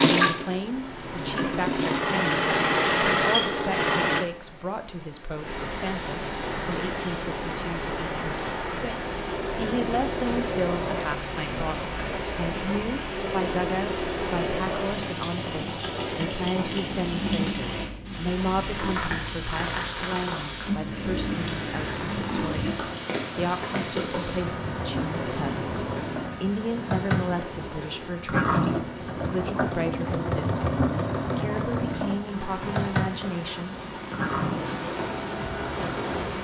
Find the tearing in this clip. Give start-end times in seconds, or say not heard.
not heard.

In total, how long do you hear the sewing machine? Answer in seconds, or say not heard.
34 s.